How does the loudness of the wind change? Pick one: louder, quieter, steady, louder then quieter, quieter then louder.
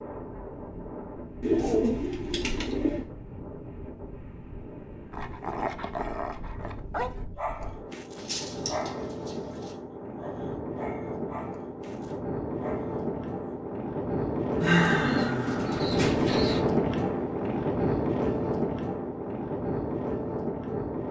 louder.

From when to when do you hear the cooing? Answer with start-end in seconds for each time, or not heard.
1.4-3.0, 8.2-9.7, 14.6-16.6.